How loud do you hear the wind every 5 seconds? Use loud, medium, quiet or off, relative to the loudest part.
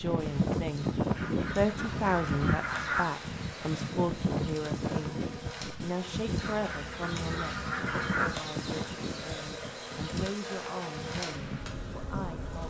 loud, medium, medium.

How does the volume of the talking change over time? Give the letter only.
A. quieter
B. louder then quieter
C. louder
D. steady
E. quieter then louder
A.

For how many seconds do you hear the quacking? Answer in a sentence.
You can hear the quacking for 4 seconds altogether.